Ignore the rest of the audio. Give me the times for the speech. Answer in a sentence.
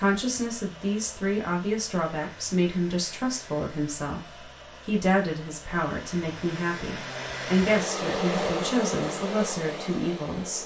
The speech can be heard from 0.0 to 10.6 s.